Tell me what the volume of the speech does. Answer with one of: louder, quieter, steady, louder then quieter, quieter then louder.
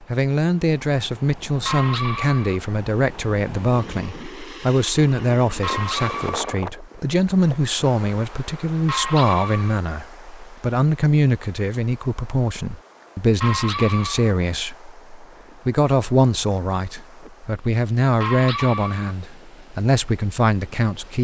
steady.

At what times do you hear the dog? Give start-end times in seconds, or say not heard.
1.6-2.6, 5.6-6.5, 8.8-9.8, 13.4-14.3, 18.2-19.1.